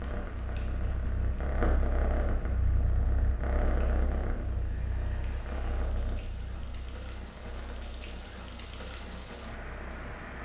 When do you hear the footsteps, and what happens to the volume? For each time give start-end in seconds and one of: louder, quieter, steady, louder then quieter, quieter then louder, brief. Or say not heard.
not heard.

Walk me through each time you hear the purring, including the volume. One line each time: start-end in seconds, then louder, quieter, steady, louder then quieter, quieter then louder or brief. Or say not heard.
0.0-10.2 quieter.